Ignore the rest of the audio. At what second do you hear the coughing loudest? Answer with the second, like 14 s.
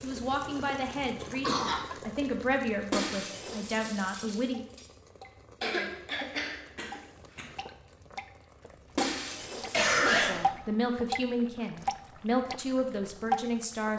10 s.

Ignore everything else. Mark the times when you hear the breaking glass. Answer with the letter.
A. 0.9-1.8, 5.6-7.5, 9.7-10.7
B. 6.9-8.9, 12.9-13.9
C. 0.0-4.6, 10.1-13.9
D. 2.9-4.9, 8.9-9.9
D.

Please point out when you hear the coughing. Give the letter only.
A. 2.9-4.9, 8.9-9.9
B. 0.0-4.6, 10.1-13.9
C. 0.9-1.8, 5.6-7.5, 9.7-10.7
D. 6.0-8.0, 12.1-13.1
C.